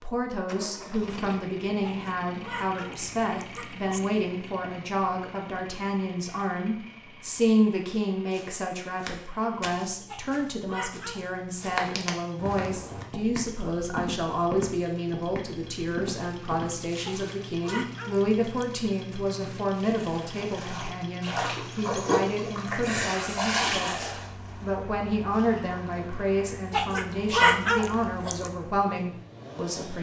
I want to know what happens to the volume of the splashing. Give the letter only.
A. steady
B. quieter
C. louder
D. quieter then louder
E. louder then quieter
E.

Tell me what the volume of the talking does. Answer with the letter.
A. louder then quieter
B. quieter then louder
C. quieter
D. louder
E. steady
E.